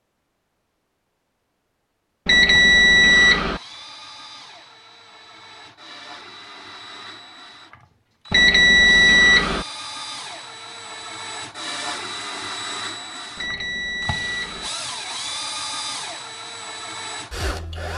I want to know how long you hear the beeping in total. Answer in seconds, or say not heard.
4 s.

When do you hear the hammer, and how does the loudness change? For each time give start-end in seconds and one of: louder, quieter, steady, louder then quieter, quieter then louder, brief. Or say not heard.
not heard.